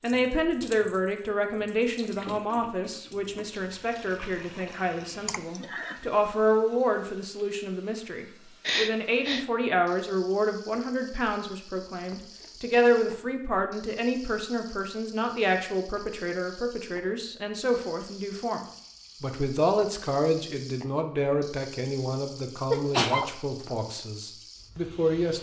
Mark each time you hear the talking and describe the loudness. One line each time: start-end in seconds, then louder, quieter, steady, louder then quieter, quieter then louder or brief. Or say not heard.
0.0-25.3 steady.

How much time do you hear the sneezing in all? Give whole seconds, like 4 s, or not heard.
2 s.